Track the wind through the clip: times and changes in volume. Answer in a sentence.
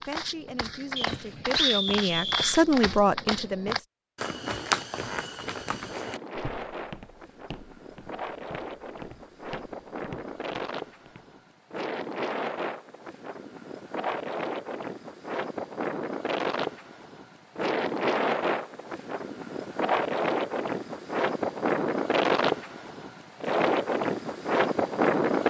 You can hear the wind from 5.4 to 25.4 s, getting louder.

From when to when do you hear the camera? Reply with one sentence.
You can't hear the camera here.